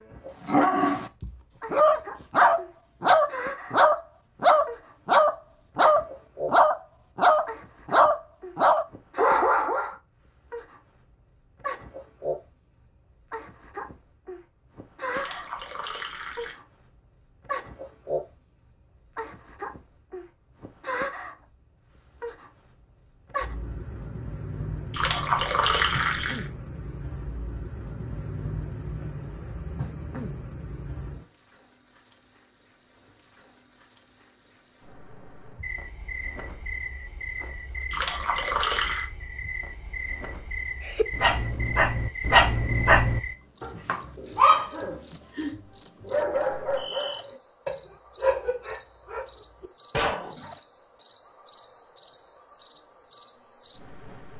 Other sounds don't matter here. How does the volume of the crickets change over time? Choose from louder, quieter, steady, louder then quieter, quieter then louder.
louder.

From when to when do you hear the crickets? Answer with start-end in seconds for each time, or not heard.
0.0-54.3.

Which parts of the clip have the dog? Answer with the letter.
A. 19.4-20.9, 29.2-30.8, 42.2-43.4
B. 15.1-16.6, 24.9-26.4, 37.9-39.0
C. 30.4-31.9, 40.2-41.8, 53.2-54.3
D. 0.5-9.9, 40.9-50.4
D.